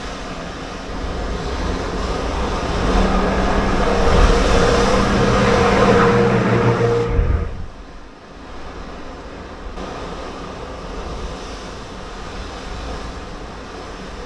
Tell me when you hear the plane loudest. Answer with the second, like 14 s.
6 s.